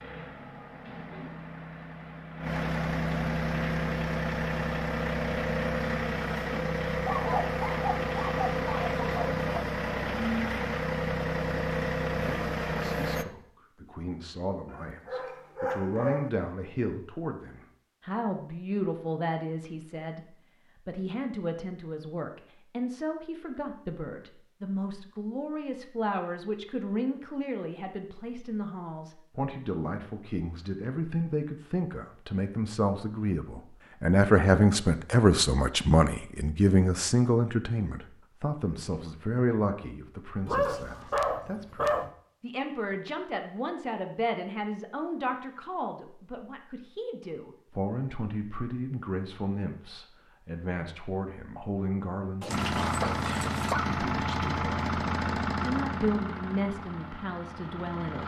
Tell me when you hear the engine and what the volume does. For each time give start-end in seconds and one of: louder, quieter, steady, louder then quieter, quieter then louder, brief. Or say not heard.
0.0-13.2 louder
52.5-58.2 quieter.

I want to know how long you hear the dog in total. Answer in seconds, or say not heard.
7 s.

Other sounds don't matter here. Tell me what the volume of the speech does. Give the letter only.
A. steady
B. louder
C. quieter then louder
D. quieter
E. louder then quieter
E.